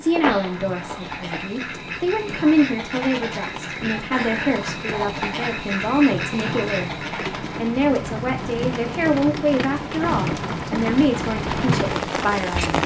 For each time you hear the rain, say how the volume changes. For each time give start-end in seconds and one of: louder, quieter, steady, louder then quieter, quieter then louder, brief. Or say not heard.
0.0-12.8 louder.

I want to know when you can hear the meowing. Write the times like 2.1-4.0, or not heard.
0.1-1.5.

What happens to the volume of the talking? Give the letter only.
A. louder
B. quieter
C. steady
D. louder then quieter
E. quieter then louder
C.